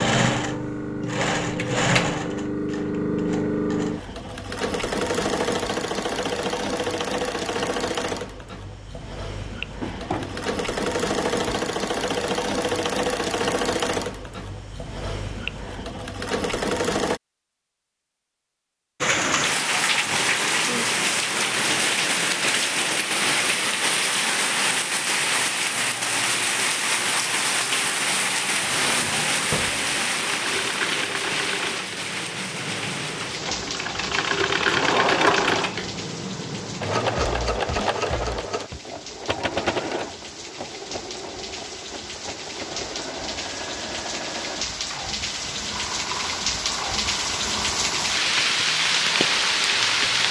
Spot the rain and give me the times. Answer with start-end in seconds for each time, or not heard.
19.0-50.2.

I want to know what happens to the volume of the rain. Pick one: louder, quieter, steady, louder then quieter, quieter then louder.
quieter then louder.